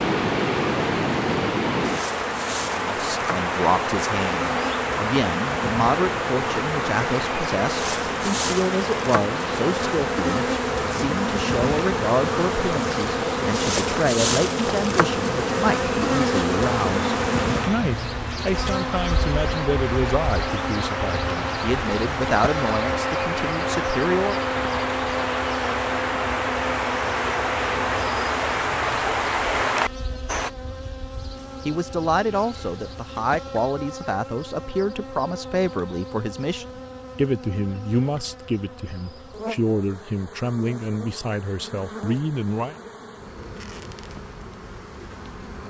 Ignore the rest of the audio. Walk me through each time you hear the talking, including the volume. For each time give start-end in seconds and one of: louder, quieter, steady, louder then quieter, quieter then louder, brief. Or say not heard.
2.8-24.4 steady
31.6-42.8 steady.